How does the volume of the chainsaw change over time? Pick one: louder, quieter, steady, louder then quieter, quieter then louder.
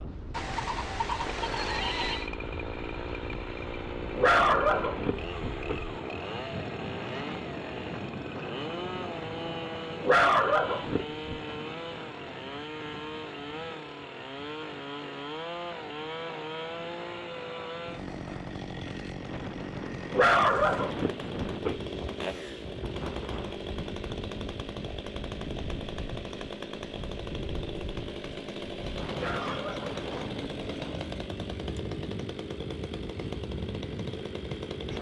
steady.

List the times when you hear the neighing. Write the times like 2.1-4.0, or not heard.
0.3-2.3.